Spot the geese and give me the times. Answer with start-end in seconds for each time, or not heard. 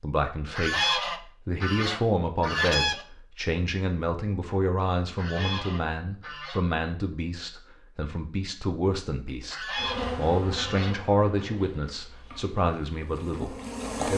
0.6-3.0, 5.2-6.6, 9.5-11.4.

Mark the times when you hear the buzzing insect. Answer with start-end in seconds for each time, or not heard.
9.8-14.1.